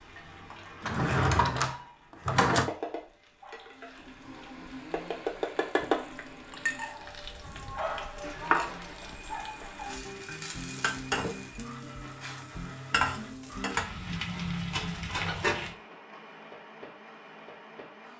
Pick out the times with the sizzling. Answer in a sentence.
The sizzling can be heard from 0.0 to 15.8 s.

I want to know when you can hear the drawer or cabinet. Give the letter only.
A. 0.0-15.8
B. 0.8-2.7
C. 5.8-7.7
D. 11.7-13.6
B.